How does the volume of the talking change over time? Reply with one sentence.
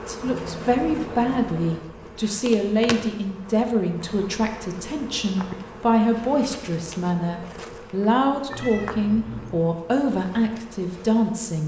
The loudness of the talking stays about the same.